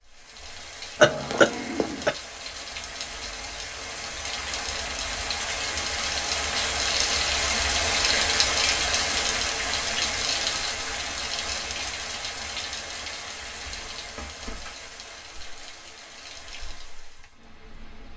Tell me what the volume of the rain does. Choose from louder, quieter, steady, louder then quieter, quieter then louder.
louder then quieter.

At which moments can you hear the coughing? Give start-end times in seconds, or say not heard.
1.0-2.1.